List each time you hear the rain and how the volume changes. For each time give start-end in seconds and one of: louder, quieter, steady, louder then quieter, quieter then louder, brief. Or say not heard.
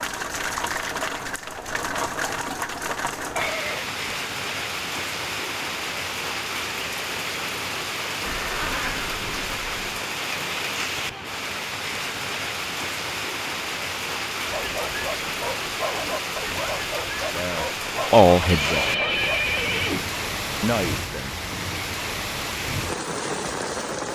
0.0-24.1 steady.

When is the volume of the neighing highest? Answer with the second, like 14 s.
19 s.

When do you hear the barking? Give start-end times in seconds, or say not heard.
14.4-19.3.